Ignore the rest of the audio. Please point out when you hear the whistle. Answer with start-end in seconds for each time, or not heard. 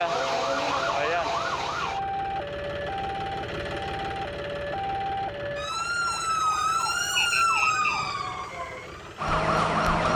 7.2-7.9.